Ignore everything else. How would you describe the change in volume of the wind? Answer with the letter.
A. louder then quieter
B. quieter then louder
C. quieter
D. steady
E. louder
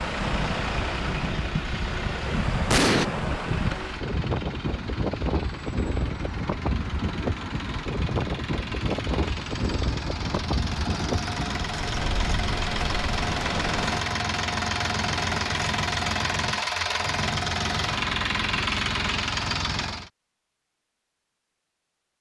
D.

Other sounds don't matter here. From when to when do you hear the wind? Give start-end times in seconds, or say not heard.
0.0-14.0.